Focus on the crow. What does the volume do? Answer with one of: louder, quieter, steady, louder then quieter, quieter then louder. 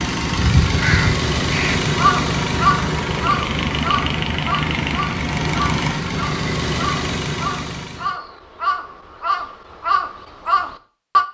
quieter then louder.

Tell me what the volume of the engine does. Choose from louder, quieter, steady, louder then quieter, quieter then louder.
steady.